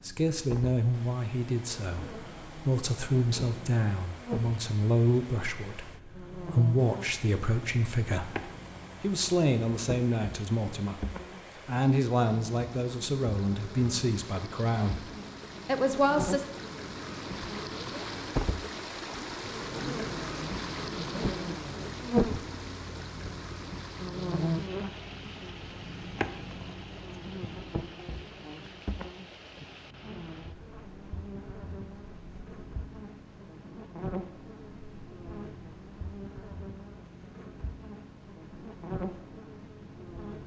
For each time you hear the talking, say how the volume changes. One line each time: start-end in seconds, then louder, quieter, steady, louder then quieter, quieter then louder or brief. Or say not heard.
0.0-16.4 steady.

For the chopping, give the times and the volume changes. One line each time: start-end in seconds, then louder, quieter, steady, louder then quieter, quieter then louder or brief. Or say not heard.
not heard.